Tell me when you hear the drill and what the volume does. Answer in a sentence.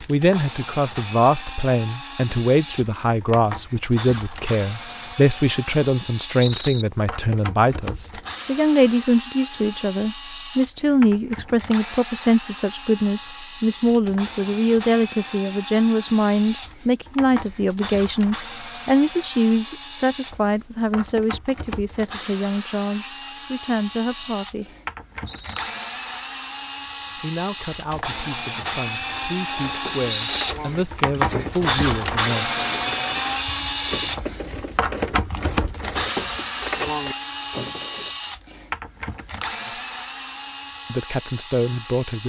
The drill can be heard from 0.0 to 42.2 s, getting louder.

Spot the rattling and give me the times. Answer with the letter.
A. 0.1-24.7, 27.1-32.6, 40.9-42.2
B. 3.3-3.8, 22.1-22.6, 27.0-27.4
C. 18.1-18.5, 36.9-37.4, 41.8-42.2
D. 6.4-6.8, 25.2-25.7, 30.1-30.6
D.